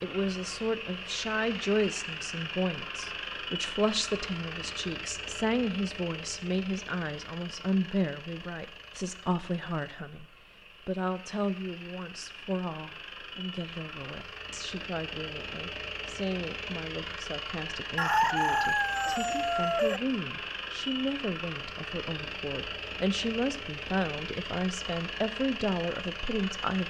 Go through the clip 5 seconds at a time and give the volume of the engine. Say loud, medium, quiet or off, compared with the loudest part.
loud, medium, medium, loud, loud, loud.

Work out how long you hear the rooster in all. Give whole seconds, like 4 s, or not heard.
2 s.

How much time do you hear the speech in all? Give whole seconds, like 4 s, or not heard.
27 s.